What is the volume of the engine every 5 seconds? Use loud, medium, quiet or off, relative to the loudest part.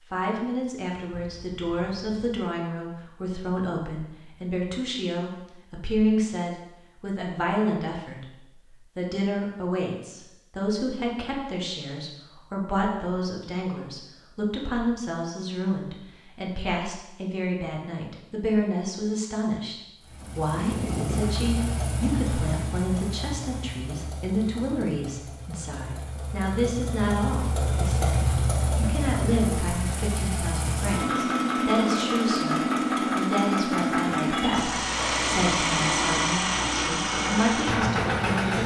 off, off, off, off, medium, medium, loud, loud.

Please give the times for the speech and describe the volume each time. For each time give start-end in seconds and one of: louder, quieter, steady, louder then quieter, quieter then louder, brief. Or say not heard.
0.1-38.6 steady.